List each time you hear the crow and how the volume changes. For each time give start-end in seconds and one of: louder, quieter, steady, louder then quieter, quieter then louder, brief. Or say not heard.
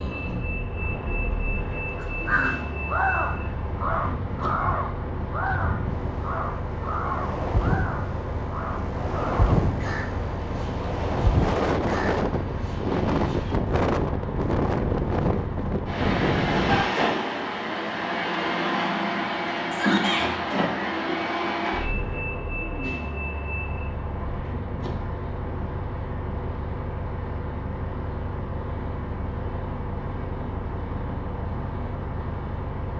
1.9-13.6 quieter.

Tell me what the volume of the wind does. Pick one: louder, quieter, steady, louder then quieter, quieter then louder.
louder.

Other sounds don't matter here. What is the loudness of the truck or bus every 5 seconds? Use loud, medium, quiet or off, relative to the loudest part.
medium, medium, medium, loud, loud, medium, medium.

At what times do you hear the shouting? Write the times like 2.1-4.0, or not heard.
19.7-20.3.